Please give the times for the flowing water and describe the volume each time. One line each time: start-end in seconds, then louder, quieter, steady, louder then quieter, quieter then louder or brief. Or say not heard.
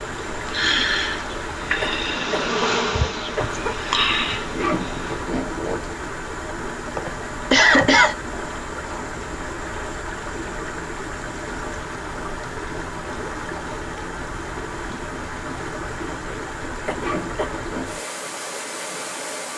0.0-19.5 steady.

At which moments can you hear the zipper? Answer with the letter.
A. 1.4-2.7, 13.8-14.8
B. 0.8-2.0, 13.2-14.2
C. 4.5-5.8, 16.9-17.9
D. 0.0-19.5
C.